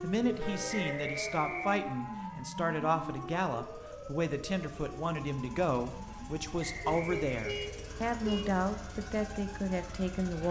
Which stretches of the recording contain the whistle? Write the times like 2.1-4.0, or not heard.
0.8-1.8, 6.5-7.7.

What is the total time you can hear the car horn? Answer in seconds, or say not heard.
2 s.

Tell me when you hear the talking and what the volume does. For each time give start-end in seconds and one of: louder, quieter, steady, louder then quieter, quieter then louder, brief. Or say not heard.
0.0-10.4 steady.